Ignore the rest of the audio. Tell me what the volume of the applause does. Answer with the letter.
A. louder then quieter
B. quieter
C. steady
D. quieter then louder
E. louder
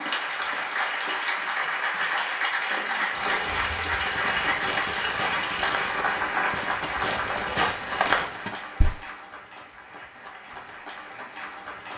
B.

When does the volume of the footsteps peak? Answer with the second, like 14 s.
8 s.